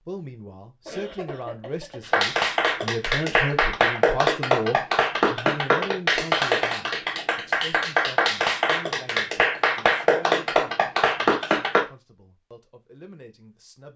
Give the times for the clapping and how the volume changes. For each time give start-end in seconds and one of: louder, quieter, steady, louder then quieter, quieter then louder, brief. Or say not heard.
2.0-11.8 steady.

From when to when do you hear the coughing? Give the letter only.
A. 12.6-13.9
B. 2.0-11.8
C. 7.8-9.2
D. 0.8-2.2
D.